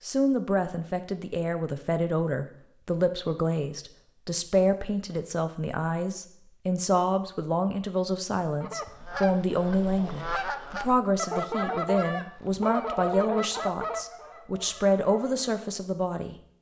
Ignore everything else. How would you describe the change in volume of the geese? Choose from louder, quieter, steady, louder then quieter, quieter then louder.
louder then quieter.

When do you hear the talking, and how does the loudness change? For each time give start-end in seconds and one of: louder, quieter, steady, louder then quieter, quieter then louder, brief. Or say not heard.
0.0-16.4 steady.